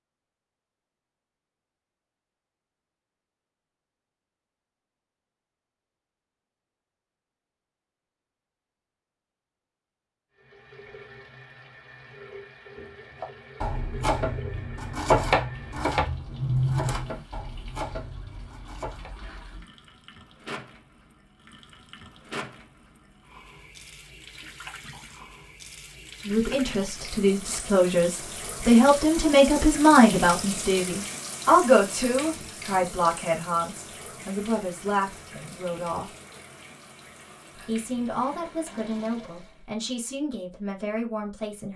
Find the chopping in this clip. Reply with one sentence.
You can hear the chopping from 13.2 to 19.1 s.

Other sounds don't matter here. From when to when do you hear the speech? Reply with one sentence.
The speech can be heard from 26.2 to 36.1 s and from 37.5 to 41.7 s.